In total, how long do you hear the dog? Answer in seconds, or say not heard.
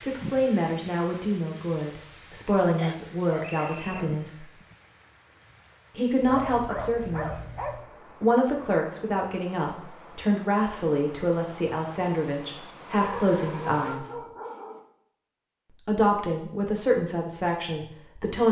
5 s.